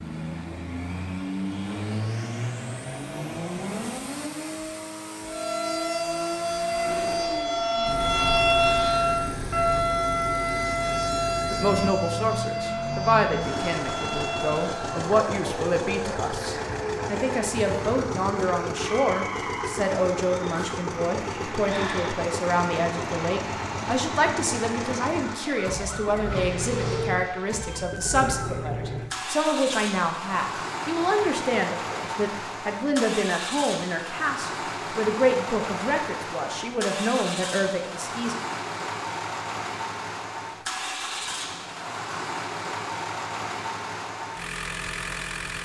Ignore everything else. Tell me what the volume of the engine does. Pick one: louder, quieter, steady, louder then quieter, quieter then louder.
steady.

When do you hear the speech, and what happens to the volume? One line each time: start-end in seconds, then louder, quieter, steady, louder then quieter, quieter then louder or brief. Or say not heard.
11.5-38.4 steady.